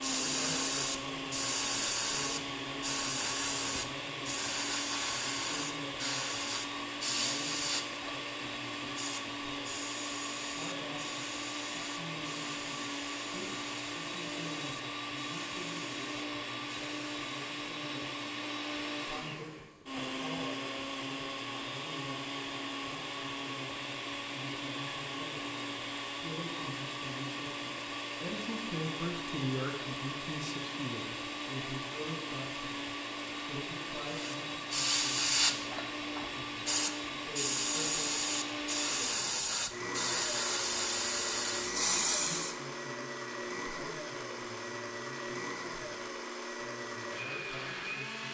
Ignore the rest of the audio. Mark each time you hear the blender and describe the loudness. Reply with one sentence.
The blender can be heard from 0.0 to 48.2 s, at a steady volume.